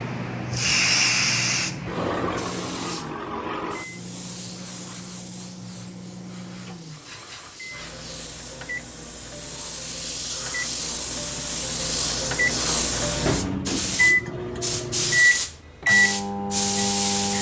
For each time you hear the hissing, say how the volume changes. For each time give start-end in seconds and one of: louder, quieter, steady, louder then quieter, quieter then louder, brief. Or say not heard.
0.0-17.3 quieter then louder.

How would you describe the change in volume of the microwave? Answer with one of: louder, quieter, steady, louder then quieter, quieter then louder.
louder.